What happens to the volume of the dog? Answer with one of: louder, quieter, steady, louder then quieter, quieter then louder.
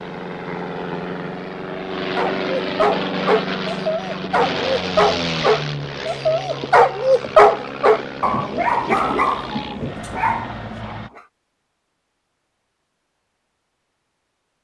louder then quieter.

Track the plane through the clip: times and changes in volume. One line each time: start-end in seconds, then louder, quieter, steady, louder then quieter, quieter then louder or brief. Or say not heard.
0.0-11.1 quieter.